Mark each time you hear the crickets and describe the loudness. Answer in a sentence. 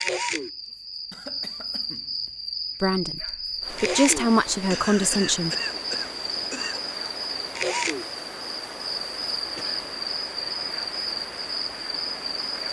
The crickets can be heard from 0.0 to 12.6 s, at a steady volume.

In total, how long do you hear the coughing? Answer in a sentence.
You can hear the coughing for 4 seconds altogether.